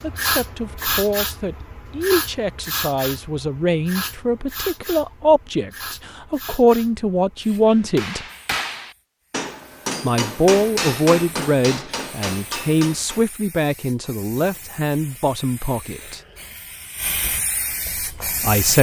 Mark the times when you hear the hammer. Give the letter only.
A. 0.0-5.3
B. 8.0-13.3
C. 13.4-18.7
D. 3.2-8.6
B.